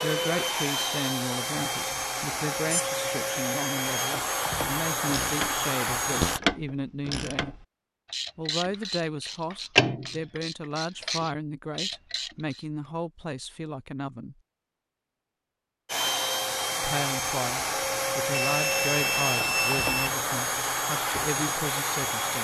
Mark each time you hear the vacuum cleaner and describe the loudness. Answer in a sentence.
You can hear the vacuum cleaner from 0.0 to 6.4 s, at a steady volume; and from 15.8 to 22.3 s, at a steady volume.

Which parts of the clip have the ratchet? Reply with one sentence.
The ratchet can be heard from 5.0 to 12.7 s.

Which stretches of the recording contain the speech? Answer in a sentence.
You can hear the speech from 0.0 to 7.5 s, from 8.3 to 14.3 s and from 16.8 to 22.3 s.